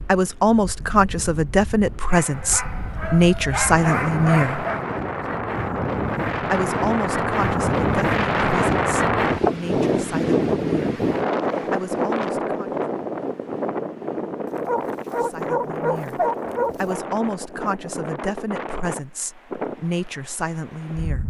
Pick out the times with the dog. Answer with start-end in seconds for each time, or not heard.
2.1-4.8, 14.4-17.0.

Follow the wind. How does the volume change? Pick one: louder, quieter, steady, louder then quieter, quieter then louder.
louder then quieter.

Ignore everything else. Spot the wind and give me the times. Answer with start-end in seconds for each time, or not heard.
0.0-21.2.